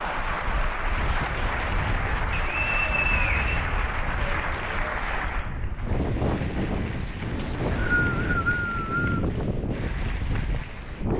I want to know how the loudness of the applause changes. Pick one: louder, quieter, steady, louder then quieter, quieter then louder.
quieter.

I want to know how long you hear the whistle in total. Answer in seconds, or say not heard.
3 s.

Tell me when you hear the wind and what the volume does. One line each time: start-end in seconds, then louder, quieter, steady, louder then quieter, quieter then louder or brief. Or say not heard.
0.1-11.1 louder.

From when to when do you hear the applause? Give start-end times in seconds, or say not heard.
0.0-11.1.